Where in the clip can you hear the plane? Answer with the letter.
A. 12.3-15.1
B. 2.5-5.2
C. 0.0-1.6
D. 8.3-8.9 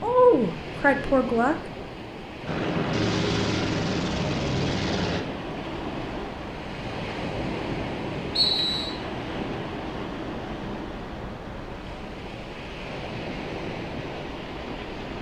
B.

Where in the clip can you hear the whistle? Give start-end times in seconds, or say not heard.
8.3-8.9.